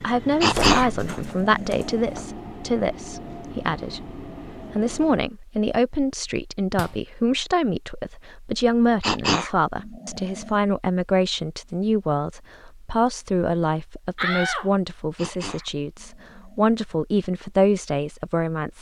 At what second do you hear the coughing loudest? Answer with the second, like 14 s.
1 s.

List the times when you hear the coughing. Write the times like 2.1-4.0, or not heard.
0.4-1.9, 9.0-10.6, 15.2-16.7.